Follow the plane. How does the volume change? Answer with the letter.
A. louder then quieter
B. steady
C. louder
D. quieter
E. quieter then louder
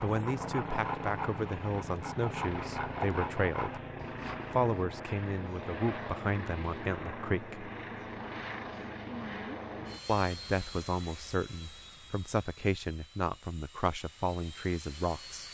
D.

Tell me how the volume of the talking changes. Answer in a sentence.
The volume of the talking stays about the same.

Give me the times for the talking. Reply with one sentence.
You can hear the talking from 0.0 to 3.8 s, from 4.5 to 7.7 s and from 10.1 to 15.4 s.